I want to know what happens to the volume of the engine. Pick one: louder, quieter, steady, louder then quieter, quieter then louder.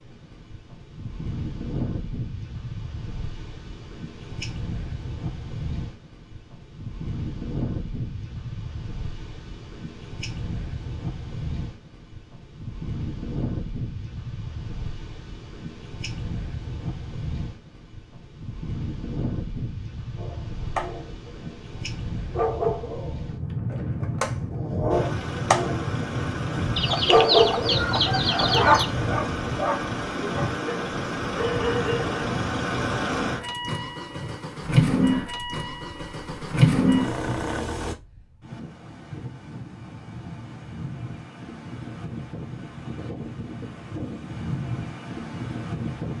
louder.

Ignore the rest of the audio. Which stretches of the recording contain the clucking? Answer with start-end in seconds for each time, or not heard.
26.8-28.9.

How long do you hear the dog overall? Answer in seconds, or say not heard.
10 s.